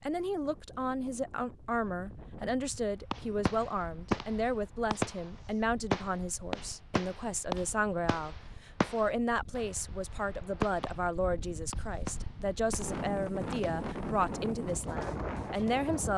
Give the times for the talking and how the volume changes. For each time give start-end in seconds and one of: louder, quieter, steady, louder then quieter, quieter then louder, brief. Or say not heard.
0.0-16.1 steady.